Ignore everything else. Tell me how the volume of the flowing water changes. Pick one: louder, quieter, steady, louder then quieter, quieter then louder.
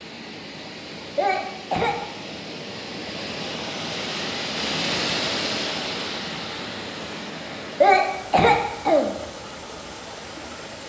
louder then quieter.